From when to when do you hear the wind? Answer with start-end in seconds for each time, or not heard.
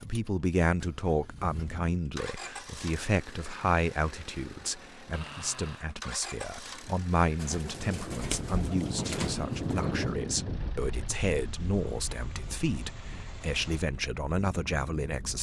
7.5-15.3.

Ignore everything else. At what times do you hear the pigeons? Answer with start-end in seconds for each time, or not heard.
7.3-10.2.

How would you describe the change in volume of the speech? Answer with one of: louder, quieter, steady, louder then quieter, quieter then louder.
steady.